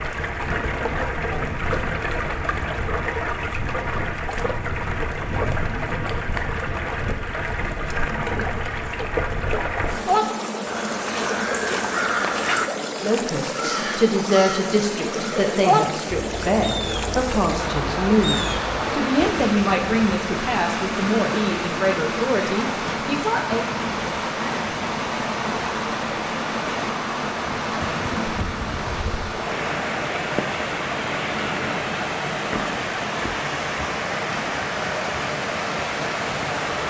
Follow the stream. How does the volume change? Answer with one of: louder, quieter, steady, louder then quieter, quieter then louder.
steady.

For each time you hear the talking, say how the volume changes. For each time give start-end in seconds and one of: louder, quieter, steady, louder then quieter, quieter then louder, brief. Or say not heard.
12.9-23.6 steady.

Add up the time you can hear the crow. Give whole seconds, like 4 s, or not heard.
9 s.